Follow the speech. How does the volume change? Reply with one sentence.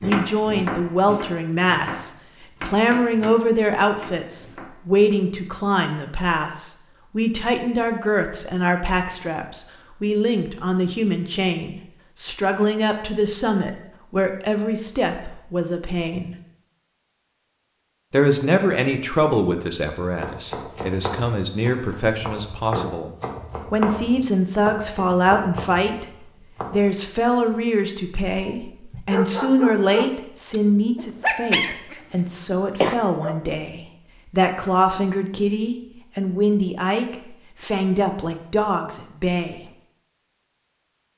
The volume of the speech stays about the same.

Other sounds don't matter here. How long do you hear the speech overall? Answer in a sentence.
You can hear the speech for 38 seconds altogether.